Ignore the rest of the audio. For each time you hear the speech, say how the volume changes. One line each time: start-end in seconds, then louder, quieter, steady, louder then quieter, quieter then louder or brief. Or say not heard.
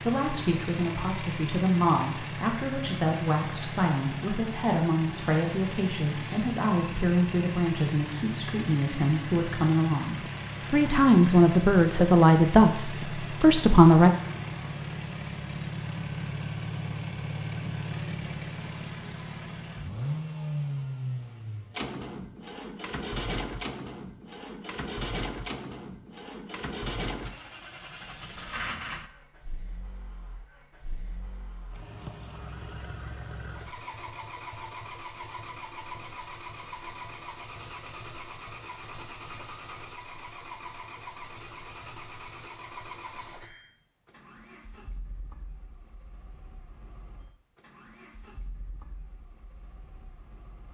0.0-14.1 louder.